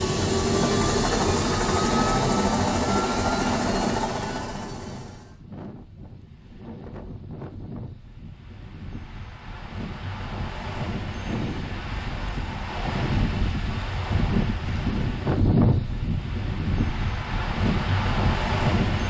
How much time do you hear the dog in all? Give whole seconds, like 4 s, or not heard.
not heard.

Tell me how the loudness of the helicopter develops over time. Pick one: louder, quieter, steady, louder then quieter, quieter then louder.
quieter.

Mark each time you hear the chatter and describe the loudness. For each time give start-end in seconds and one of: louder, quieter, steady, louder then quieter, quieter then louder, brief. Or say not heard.
not heard.